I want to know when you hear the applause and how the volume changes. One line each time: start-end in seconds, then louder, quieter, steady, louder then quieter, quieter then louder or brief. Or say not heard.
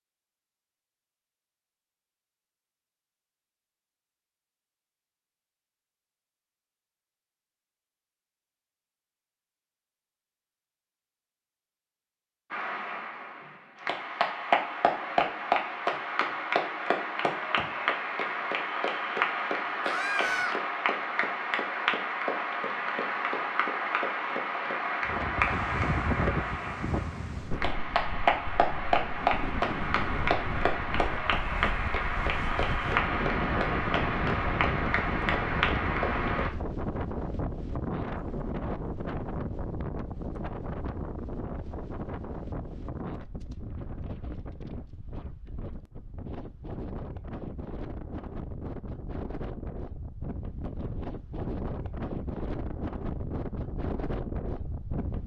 12.5-36.5 steady.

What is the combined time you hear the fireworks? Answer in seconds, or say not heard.
not heard.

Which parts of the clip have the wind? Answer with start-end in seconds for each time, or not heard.
25.1-55.2.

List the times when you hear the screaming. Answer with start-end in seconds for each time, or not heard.
19.9-20.6.